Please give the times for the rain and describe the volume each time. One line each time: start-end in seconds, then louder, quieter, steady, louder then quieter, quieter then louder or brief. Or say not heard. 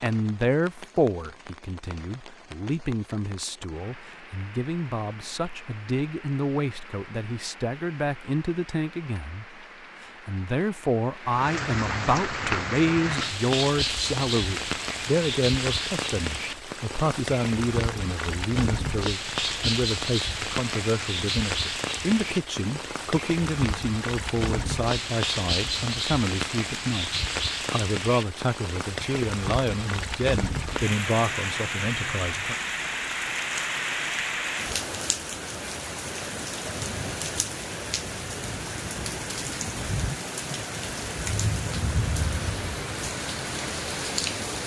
0.0-44.6 louder.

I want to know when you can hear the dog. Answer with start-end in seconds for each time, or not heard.
not heard.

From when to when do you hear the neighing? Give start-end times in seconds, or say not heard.
not heard.